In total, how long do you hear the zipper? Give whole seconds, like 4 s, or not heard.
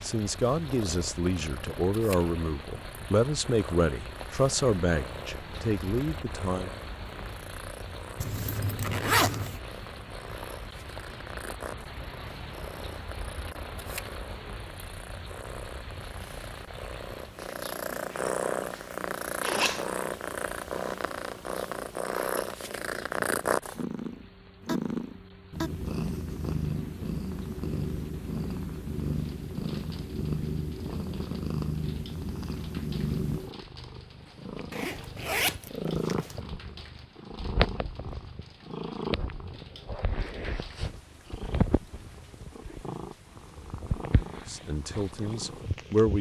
5 s.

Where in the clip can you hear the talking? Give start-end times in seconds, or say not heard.
0.0-6.7, 44.5-46.1.